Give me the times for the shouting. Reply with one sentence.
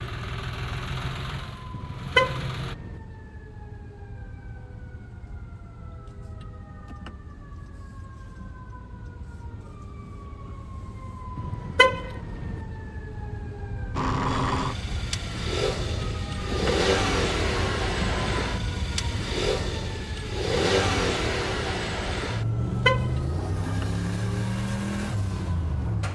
The shouting can't be heard in this clip.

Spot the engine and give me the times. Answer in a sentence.
You can hear the engine from 0.0 to 2.8 s and from 13.9 to 26.0 s.